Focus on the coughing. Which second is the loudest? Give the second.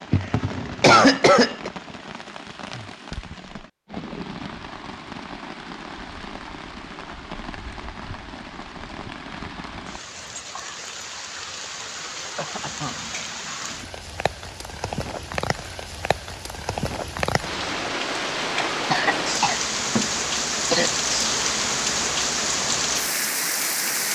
1 s.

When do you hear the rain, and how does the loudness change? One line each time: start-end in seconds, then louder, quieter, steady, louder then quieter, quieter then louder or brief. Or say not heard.
0.0-24.0 louder.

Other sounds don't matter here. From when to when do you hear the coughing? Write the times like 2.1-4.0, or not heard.
0.1-1.7, 12.3-12.9, 18.9-20.9.